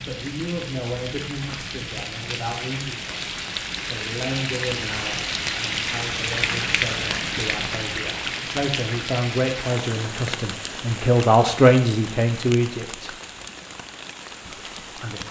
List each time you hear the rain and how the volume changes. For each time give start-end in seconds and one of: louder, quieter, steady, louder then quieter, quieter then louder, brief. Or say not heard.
0.0-15.2 louder then quieter.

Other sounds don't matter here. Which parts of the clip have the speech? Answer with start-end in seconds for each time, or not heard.
0.1-13.1, 14.4-15.2.